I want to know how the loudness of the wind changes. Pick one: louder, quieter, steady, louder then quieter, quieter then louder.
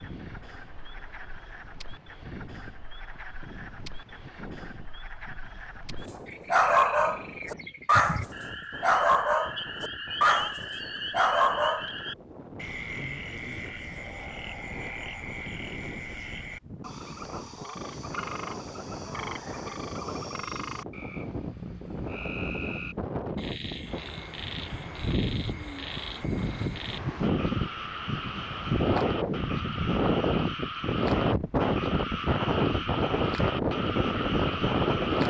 louder.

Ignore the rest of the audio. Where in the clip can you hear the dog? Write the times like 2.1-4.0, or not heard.
6.5-11.9.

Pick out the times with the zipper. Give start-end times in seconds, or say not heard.
not heard.